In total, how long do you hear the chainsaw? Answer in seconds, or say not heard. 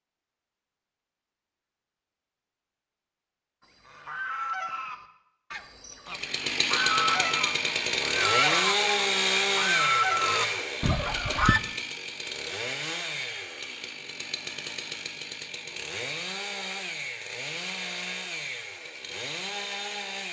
14 s.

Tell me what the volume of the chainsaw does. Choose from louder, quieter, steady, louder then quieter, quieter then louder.
quieter.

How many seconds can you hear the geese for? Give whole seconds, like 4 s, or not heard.
8 s.